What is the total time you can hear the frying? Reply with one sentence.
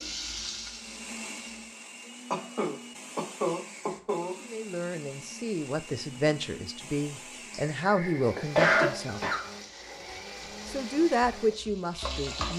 The frying can be heard for 6 seconds in total.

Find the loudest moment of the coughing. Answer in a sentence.
The loudest moment of the coughing is at 9 seconds.